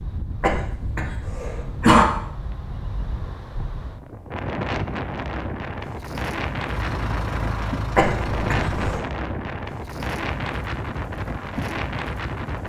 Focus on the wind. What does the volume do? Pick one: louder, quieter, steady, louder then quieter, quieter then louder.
louder.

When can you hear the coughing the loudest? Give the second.
2 s.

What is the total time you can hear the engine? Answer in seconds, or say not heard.
2 s.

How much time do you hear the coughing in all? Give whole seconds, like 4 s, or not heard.
3 s.